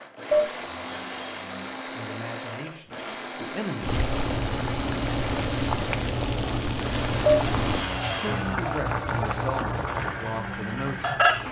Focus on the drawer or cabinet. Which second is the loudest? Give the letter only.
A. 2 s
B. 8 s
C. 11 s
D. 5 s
B.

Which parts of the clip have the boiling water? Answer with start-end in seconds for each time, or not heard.
3.8-11.4.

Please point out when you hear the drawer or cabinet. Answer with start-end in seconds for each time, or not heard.
0.8-1.8, 7.5-8.6.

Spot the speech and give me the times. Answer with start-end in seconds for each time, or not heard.
1.9-4.0, 8.1-11.2.